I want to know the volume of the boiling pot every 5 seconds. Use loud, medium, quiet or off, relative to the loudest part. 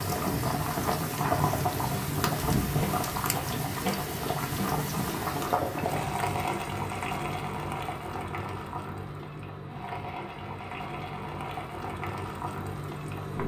loud, loud, medium.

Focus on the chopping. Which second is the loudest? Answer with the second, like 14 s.
3 s.